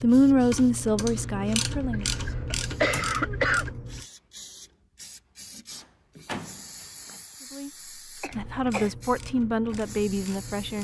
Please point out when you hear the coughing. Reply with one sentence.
The coughing can be heard from 1.7 to 3.8 s and from 8.2 to 8.9 s.